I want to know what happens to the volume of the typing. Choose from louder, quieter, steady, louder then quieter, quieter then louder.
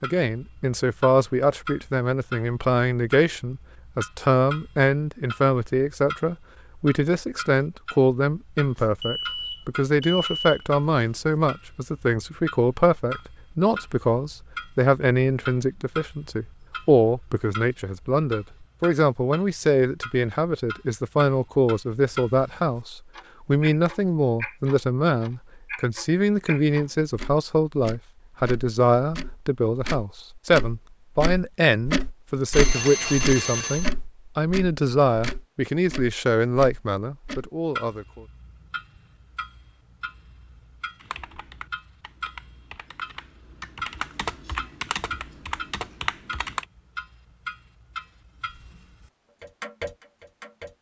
louder.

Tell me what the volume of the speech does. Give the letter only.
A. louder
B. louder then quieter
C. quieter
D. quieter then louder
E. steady
E.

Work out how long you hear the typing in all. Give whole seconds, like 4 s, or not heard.
6 s.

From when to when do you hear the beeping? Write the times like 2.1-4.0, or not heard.
8.8-10.7, 32.5-33.9.